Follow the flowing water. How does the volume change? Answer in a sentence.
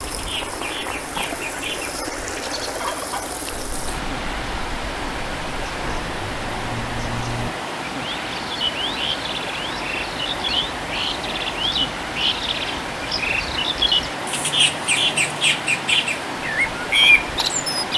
The volume of the flowing water stays about the same.